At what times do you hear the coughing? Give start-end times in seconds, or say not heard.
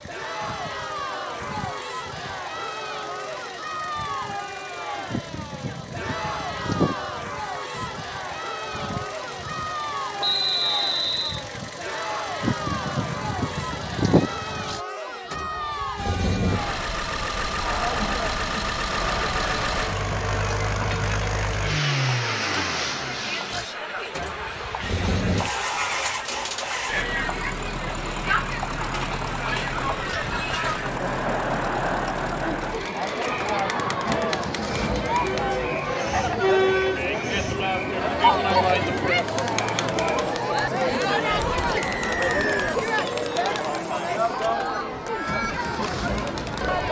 not heard.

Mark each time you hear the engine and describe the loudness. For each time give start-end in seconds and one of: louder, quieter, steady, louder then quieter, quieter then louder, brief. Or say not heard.
0.0-46.8 louder then quieter.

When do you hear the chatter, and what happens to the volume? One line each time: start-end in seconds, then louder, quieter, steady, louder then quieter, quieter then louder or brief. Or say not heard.
0.1-46.8 louder.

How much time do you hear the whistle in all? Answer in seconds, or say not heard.
2 s.